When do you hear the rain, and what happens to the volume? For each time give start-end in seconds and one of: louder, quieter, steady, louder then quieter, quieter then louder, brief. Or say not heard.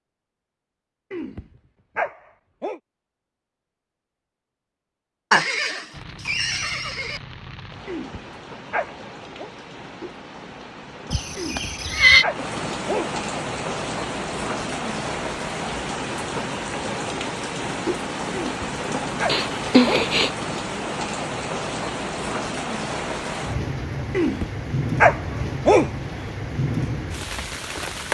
5.9-28.0 louder.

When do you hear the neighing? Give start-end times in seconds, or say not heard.
5.3-7.2, 11.1-12.2, 19.2-20.3.